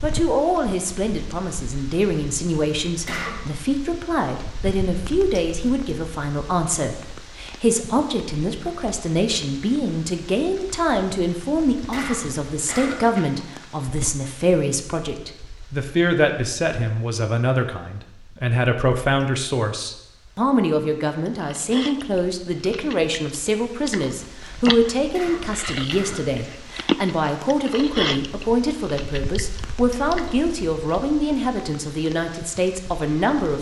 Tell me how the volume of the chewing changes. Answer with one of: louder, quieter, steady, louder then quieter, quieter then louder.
louder then quieter.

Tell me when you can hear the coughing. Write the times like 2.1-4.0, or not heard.
3.0-3.5, 11.9-13.2, 25.1-26.4.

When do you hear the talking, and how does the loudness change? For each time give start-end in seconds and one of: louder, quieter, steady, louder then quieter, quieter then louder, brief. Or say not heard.
0.0-33.5 steady.